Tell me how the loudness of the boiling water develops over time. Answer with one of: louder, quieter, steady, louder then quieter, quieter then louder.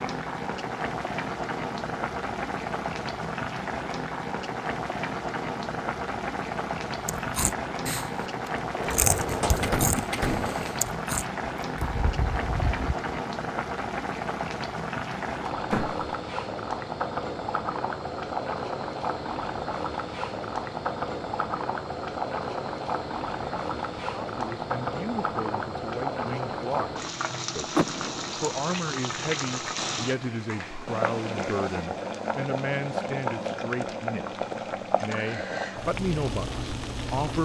steady.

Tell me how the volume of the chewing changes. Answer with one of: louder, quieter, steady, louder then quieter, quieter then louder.
louder then quieter.